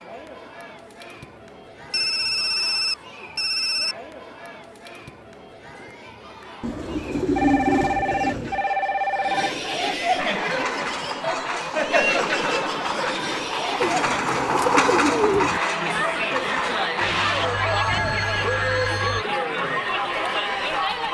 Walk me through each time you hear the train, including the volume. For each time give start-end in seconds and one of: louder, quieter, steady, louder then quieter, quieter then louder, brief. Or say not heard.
10.2-18.3 louder then quieter.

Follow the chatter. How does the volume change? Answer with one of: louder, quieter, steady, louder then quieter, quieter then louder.
louder.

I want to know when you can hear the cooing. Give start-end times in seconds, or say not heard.
6.6-8.7, 13.8-15.6.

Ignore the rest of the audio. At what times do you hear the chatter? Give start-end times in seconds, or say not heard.
0.0-21.0.